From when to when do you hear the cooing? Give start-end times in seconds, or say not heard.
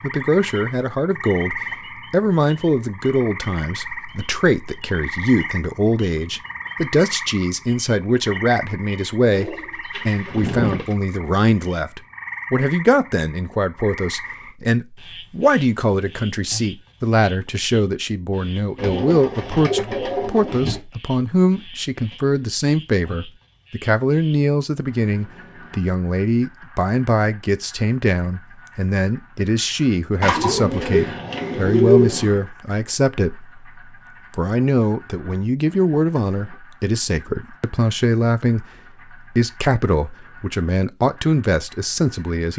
9.3-10.9, 18.8-20.8, 30.2-32.4.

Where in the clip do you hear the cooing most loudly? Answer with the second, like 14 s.
32 s.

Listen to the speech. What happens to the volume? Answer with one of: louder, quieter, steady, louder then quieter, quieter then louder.
steady.